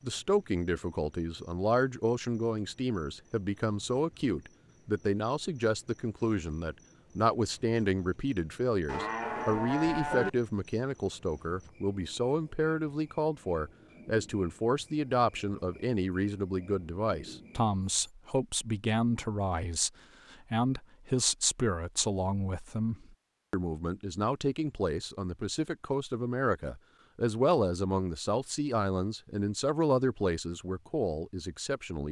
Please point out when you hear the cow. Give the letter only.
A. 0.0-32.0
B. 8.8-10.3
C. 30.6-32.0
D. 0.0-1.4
B.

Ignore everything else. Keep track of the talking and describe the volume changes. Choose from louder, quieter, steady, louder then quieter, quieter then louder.
steady.